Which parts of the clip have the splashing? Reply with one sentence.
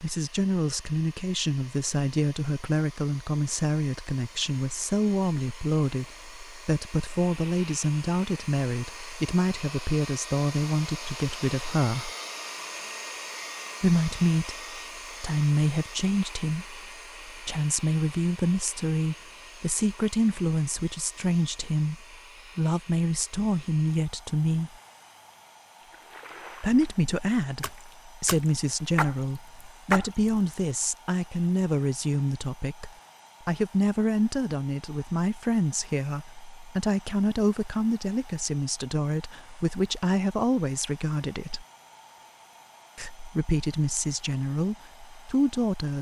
The splashing can be heard from 25.8 to 30.6 s.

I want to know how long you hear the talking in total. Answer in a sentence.
You can hear the talking for 41 seconds altogether.